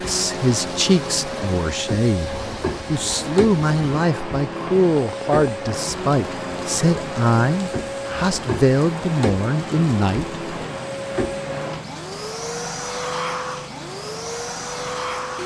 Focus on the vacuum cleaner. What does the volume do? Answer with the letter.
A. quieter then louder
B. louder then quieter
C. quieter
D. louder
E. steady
E.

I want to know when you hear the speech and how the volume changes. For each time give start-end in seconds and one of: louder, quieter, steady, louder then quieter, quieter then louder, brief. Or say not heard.
0.1-10.4 steady.